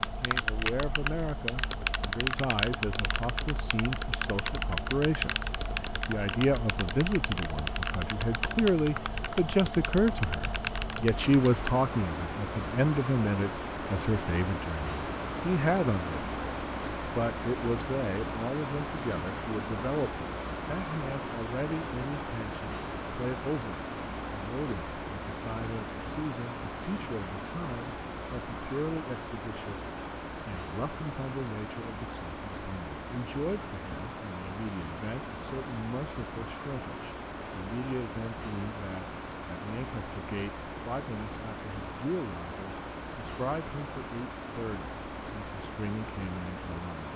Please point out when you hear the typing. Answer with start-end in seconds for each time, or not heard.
0.0-11.8.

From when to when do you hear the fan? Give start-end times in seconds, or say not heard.
0.0-47.1.